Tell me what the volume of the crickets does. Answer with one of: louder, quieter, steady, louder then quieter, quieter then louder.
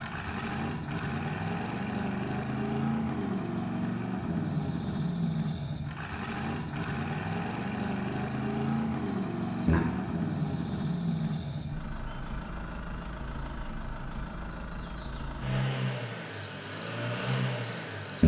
quieter then louder.